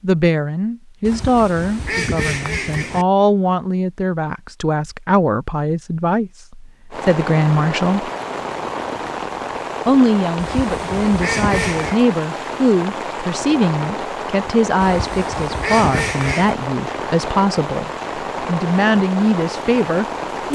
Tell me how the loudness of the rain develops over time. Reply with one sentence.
The loudness of the rain stays about the same.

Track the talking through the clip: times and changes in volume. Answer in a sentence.
You can hear the talking from 0.0 to 8.1 s, at a steady volume; and from 9.8 to 20.4 s, at a steady volume.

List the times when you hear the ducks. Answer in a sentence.
The ducks can be heard from 1.1 to 3.0 s, from 10.3 to 11.9 s and from 14.8 to 16.6 s.